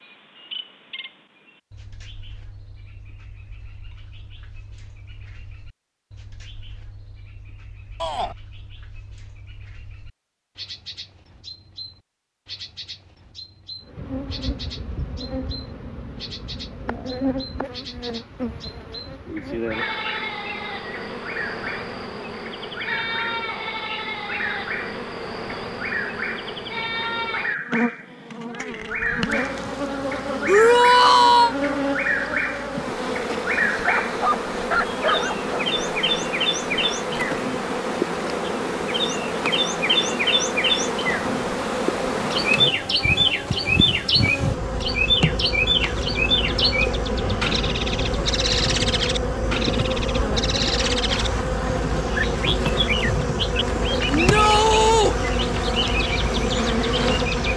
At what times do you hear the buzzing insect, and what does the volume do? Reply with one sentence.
You can hear the buzzing insect from 13.8 to 57.5 s, getting louder.